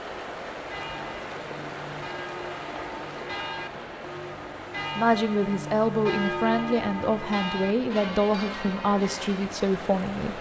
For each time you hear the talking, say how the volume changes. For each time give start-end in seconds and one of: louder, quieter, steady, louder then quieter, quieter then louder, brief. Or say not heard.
5.0-10.3 steady.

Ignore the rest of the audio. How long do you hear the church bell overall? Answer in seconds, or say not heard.
9 s.